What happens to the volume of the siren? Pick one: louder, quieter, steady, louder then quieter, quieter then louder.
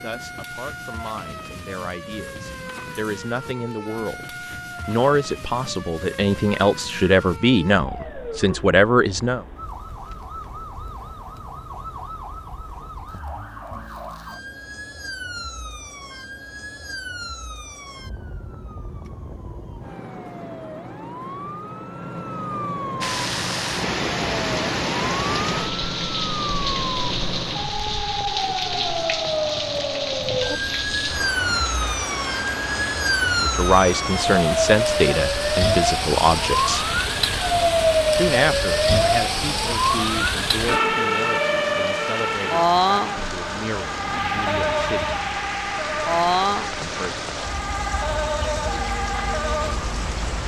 louder.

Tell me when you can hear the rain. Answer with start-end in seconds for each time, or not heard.
23.0-50.4.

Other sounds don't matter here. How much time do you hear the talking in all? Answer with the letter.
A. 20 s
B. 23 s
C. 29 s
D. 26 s
A.